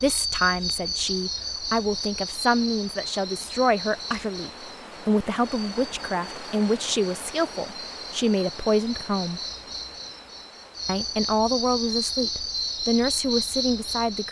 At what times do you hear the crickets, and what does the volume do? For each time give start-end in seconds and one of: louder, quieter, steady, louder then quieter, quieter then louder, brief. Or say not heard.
0.0-14.2 quieter then louder.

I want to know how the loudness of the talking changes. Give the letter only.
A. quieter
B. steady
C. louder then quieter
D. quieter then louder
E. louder
B.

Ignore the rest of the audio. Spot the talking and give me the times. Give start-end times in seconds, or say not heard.
0.0-9.4, 10.8-14.2.